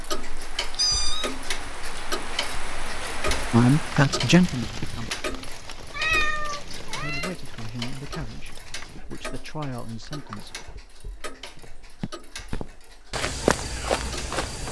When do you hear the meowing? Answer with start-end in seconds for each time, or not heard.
0.7-1.4, 5.9-7.3, 10.0-10.8.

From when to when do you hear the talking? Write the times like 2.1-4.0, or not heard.
3.5-5.1, 6.8-10.6.